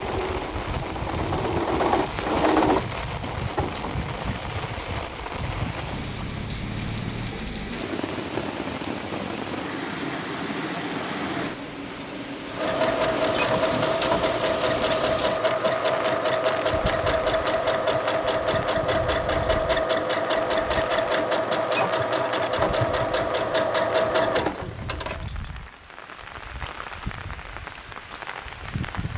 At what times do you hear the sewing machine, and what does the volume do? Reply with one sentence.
The sewing machine can be heard from 0.0 to 4.0 s, getting louder then quieter; and from 12.4 to 25.2 s, at a steady volume.